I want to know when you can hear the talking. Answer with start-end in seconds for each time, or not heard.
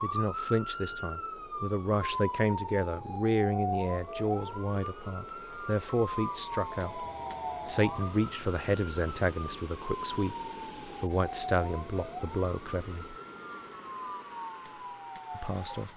0.0-7.0, 7.7-13.2, 15.3-15.9.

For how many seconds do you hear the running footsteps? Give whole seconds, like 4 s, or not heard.
not heard.